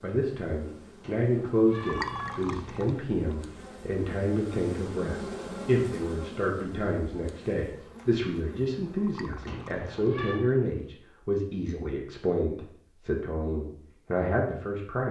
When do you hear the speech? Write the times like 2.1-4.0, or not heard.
0.0-15.0.